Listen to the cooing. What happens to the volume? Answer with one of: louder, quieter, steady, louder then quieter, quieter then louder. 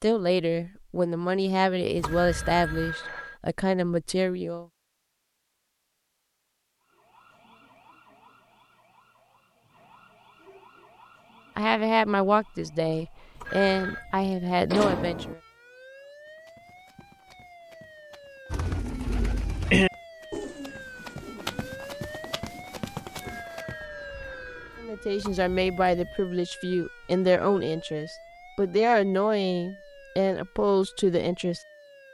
quieter.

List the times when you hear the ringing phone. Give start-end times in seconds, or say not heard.
2.0-3.4, 13.4-14.1, 23.2-24.9.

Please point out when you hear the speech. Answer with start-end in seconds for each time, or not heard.
0.0-4.7, 11.6-15.4, 24.8-31.6.